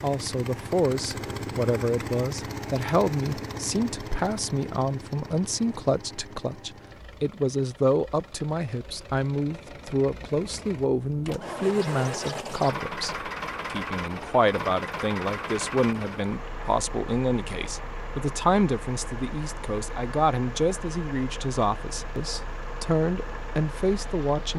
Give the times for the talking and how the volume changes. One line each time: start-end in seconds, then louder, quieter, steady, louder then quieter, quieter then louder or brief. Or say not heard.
0.0-24.5 steady.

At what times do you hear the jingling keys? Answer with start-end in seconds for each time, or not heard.
not heard.